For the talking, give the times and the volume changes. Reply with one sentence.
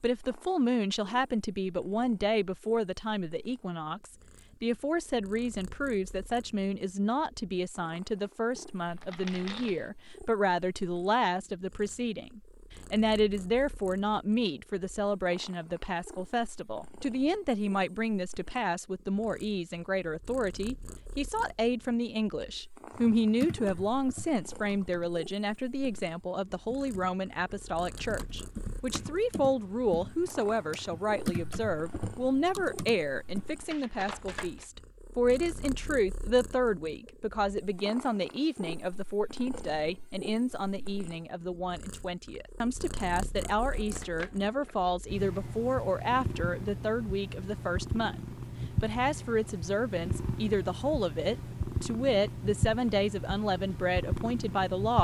The talking can be heard from 0.0 to 54.9 s, at a steady volume.